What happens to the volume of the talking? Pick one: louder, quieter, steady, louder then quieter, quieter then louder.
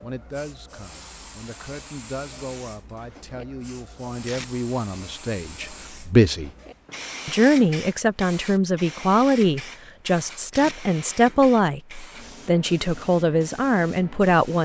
louder.